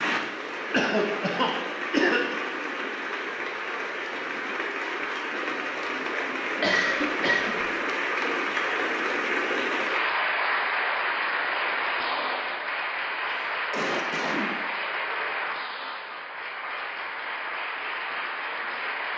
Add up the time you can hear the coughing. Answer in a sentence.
You can hear the coughing for 4 seconds altogether.